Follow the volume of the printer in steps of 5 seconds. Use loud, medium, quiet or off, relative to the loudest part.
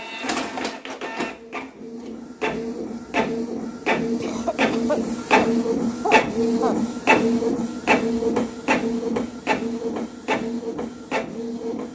medium, loud, medium.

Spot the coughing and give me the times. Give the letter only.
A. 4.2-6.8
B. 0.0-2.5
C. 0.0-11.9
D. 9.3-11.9
A.